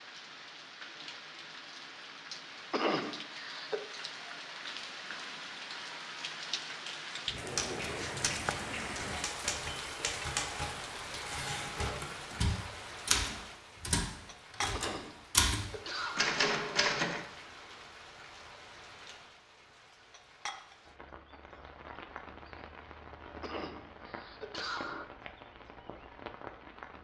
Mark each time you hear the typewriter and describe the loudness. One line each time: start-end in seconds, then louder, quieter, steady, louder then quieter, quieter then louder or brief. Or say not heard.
7.5-17.2 louder.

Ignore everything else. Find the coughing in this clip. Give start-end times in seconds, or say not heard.
2.7-3.8, 14.7-16.4, 23.4-25.1.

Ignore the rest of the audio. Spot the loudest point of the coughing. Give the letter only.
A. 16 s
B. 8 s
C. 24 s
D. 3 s
D.